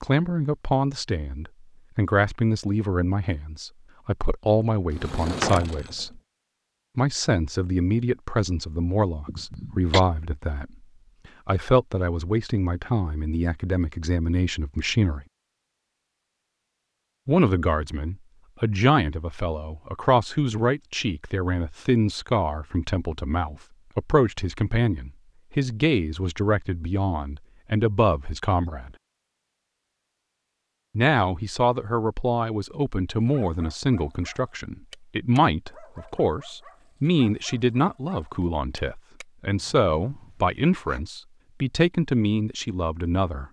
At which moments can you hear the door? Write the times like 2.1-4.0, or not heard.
4.9-6.0.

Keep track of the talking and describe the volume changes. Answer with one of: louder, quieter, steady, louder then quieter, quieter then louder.
steady.